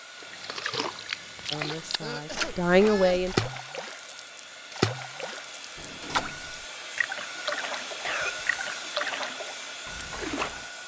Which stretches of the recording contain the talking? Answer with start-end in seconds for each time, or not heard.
1.5-3.4.